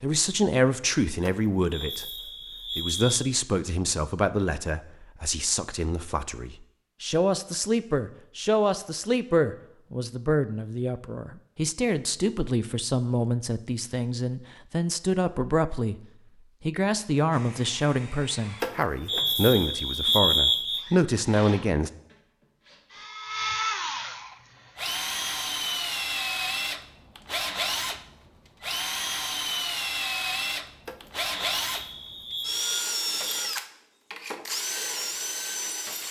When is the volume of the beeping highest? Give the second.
20 s.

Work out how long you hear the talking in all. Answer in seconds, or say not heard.
21 s.